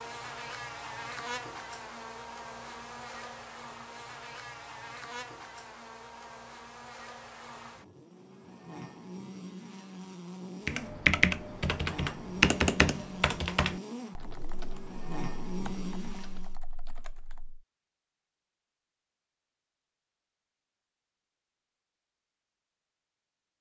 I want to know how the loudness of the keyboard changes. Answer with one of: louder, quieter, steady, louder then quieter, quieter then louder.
quieter.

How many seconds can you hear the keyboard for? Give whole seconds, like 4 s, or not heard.
7 s.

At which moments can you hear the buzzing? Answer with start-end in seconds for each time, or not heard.
0.0-16.6.